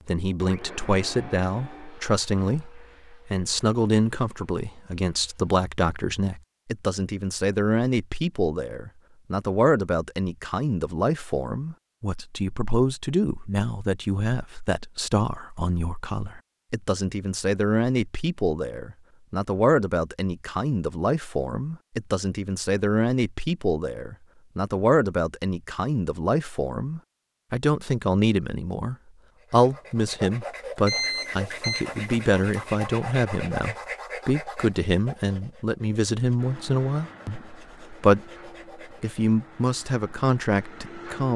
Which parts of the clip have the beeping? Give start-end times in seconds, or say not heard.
30.9-32.9.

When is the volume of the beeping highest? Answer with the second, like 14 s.
31 s.